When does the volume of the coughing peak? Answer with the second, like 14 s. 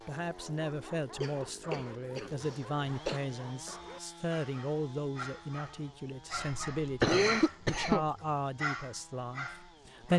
7 s.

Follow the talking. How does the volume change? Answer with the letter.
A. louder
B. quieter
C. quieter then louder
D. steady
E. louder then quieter
D.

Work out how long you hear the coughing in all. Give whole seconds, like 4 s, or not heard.
4 s.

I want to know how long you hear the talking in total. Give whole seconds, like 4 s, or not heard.
10 s.